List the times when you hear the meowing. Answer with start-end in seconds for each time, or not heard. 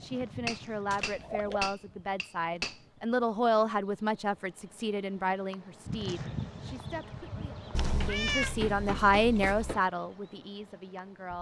0.9-1.6, 7.8-9.8.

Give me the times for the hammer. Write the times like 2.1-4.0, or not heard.
0.5-2.8, 8.0-9.8.